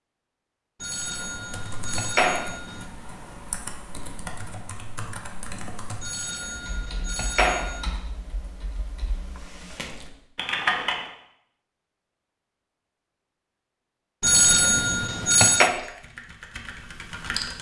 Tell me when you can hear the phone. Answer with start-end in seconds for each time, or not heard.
0.8-2.9, 6.0-7.8, 14.2-15.7.